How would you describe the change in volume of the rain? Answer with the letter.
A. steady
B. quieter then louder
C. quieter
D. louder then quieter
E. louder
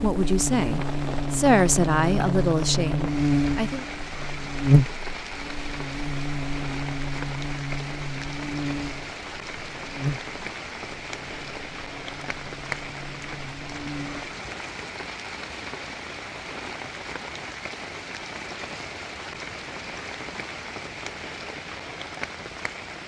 A.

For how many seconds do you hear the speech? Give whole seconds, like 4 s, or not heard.
4 s.